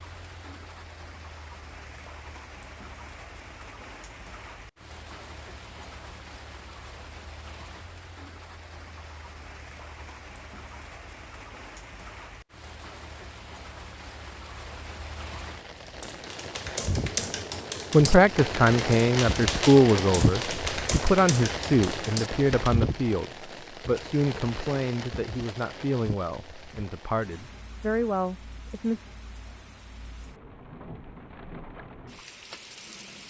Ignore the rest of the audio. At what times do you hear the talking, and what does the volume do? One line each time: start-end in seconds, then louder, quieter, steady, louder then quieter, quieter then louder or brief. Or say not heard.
17.9-29.0 quieter.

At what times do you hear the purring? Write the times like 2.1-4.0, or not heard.
not heard.